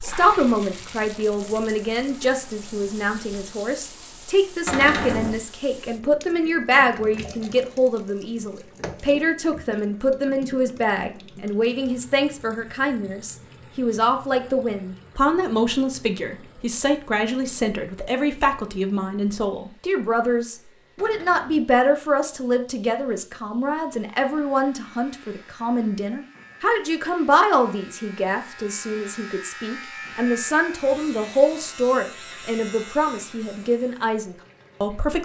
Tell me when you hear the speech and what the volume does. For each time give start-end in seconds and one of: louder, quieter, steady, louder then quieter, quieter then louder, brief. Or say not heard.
0.0-35.2 steady.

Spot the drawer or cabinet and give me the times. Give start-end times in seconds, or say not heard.
4.7-5.4, 20.9-21.8.